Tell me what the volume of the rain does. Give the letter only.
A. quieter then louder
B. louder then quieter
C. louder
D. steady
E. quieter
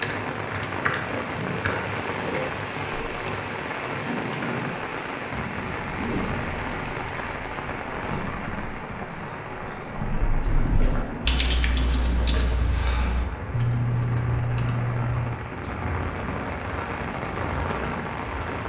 A.